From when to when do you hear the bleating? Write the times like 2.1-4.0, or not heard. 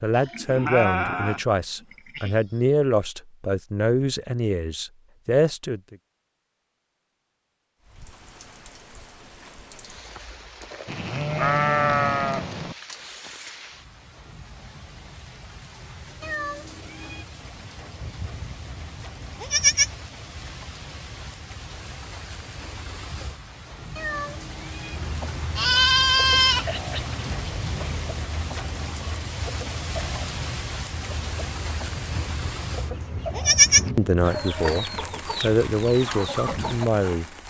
0.1-2.4, 10.8-12.8, 18.0-19.9, 25.6-27.9, 31.9-33.9.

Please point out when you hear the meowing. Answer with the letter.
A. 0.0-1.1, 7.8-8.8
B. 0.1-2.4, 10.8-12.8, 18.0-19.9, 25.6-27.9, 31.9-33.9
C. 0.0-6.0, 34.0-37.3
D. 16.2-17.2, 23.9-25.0
D.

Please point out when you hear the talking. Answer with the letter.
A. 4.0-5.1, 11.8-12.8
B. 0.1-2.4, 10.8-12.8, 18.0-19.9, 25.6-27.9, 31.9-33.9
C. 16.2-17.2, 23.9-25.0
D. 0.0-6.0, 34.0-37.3
D.